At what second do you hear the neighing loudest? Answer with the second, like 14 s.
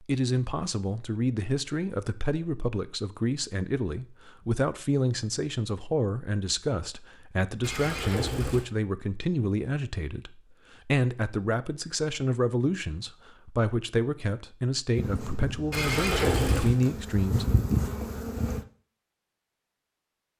16 s.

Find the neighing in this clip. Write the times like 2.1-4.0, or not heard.
7.6-8.7, 15.7-16.8.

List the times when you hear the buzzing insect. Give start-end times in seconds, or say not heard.
14.9-18.6.